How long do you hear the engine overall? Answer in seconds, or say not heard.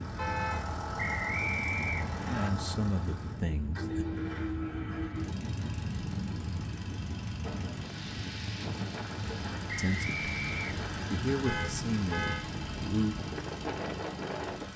15 s.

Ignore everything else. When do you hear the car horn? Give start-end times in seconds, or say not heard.
0.1-0.8, 11.4-12.4.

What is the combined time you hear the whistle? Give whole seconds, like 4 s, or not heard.
3 s.